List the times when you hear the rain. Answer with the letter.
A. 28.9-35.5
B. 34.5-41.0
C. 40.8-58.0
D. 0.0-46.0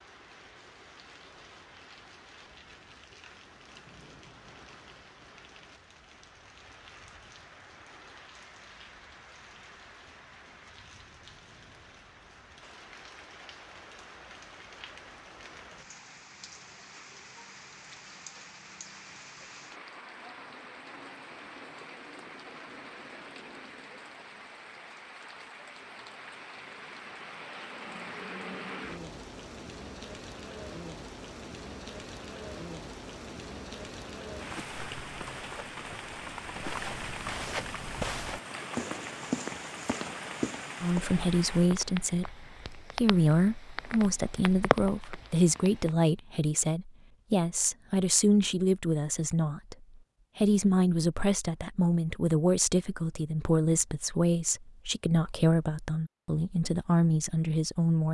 D.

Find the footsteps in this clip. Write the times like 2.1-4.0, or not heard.
34.5-41.0.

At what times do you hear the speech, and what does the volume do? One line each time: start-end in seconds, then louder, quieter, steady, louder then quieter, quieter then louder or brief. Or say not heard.
40.8-58.0 steady.